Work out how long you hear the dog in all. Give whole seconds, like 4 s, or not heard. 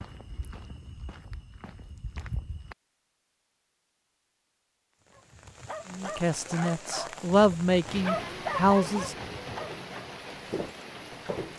5 s.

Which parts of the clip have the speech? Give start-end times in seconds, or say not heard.
5.9-9.2.